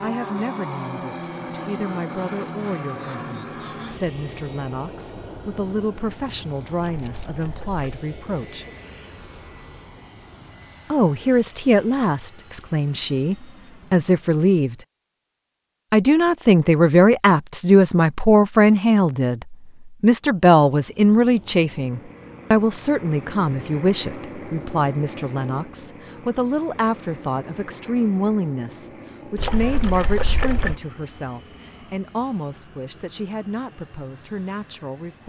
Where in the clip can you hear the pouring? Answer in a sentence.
You can hear the pouring from 7.0 to 8.1 s and from 29.4 to 30.8 s.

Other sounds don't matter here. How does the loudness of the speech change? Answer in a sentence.
The volume of the speech goes up, then down.